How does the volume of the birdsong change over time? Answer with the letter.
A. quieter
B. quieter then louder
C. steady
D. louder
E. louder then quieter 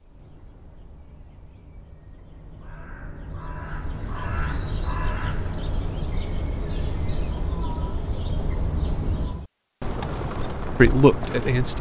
D.